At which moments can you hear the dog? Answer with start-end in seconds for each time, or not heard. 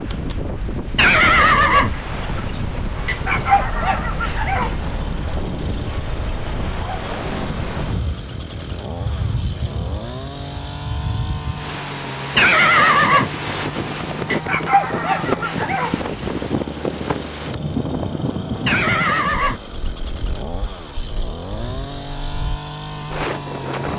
3.0-4.8, 14.3-16.0.